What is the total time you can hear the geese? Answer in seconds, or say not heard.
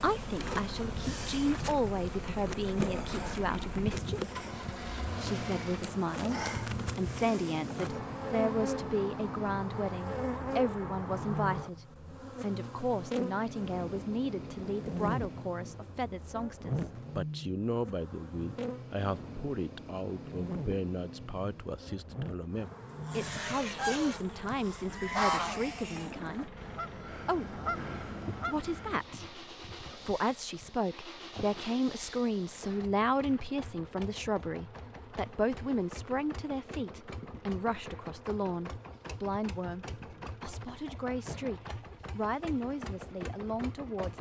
6 s.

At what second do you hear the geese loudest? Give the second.
25 s.